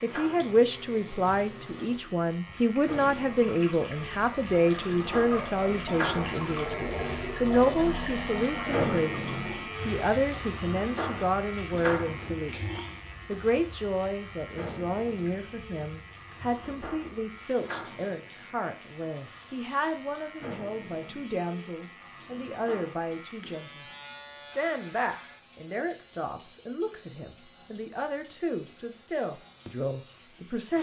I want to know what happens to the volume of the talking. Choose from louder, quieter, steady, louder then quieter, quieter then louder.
quieter.